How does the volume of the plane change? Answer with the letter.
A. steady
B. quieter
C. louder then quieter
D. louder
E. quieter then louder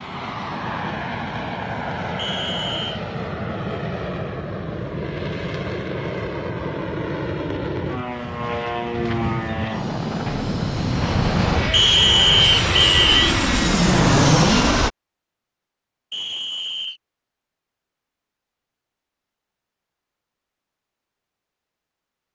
D.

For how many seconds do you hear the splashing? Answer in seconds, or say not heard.
not heard.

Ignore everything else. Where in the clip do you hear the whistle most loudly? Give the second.
12 s.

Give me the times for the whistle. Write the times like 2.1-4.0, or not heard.
2.1-3.0, 11.7-13.3, 16.1-17.0.